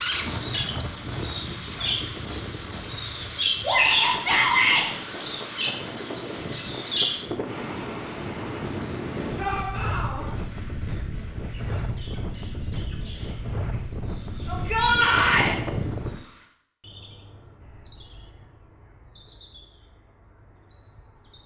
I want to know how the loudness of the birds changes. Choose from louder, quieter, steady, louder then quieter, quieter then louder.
quieter.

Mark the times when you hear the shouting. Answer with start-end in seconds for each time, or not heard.
3.6-4.8, 9.3-10.2, 14.4-15.6.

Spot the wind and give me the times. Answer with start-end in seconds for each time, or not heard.
0.0-16.2.